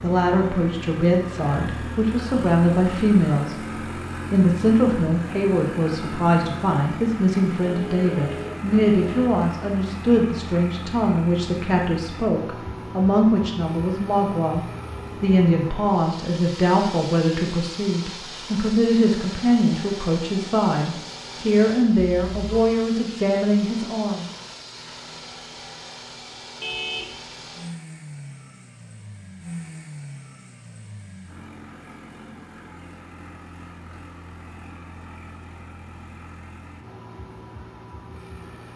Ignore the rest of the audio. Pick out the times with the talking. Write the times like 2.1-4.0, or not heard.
0.0-3.5, 4.3-24.3.